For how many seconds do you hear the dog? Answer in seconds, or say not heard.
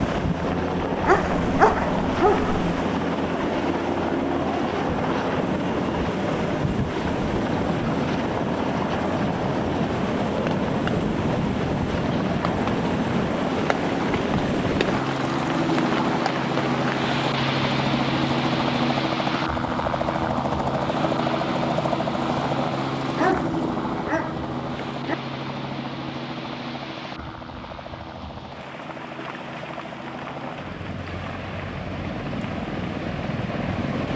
4 s.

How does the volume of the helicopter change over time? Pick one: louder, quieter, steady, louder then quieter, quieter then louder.
quieter.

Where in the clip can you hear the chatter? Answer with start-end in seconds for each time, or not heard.
not heard.